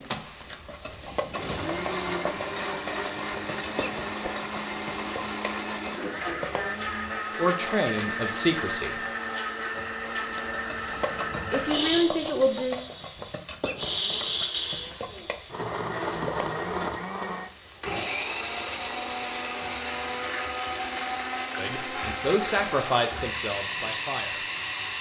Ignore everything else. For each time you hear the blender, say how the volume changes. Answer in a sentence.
The blender can be heard from 0.0 to 24.9 s, at a steady volume.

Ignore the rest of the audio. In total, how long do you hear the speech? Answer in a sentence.
The speech can be heard for 6 seconds in total.